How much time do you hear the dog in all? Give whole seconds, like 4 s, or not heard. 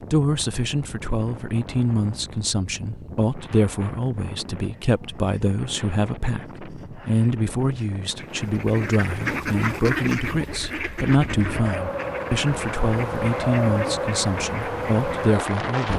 not heard.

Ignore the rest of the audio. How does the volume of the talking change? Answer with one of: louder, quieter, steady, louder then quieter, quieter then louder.
steady.